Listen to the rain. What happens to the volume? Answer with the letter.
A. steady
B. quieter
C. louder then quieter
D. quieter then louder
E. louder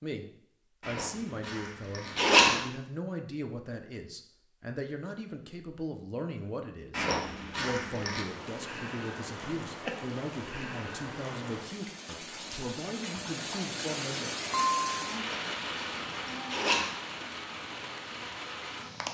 C.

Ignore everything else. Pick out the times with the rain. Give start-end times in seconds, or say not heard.
8.1-19.0.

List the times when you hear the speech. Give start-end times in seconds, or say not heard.
0.0-14.3.